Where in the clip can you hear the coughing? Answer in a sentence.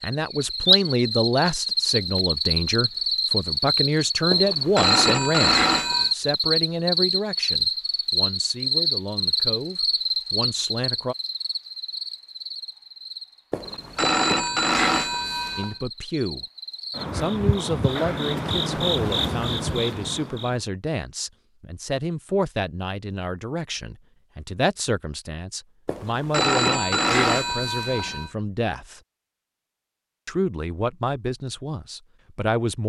You can't hear the coughing here.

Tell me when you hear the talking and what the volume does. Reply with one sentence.
You can hear the talking from 0.0 to 11.2 s, getting quieter; briefly from 15.6 to 16.4 s; from 17.1 to 29.0 s, at a steady volume; and briefly from 30.2 to 32.8 s.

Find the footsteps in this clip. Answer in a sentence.
The footsteps can't be heard in this clip.